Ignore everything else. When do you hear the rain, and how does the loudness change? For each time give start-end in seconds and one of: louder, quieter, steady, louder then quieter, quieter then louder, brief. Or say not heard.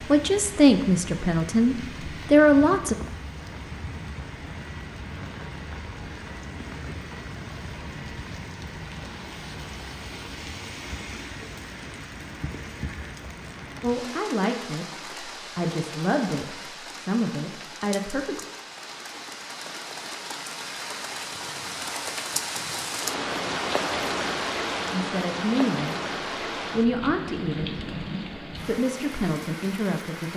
0.0-30.3 louder.